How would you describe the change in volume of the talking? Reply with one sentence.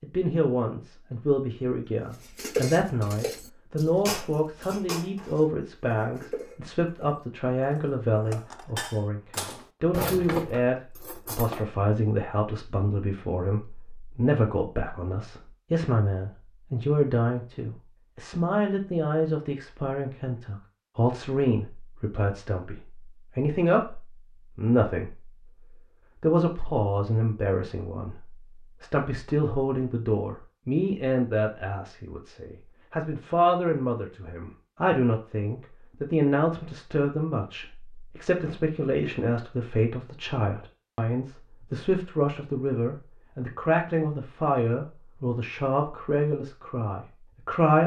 The loudness of the talking stays about the same.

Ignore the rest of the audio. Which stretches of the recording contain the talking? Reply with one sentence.
You can hear the talking from 0.0 to 47.8 s.